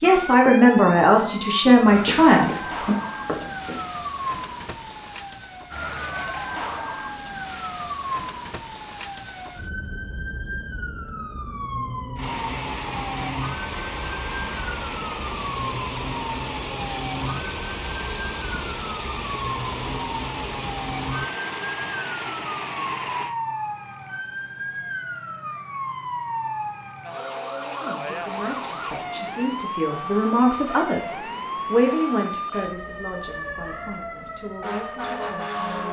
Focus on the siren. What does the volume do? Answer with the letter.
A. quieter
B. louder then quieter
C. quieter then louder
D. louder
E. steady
E.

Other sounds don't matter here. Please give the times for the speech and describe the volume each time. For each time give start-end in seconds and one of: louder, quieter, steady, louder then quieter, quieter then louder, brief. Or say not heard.
0.0-3.0 brief
27.8-35.8 louder then quieter.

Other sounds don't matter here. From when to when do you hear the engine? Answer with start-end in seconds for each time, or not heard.
12.2-23.4, 28.0-31.9.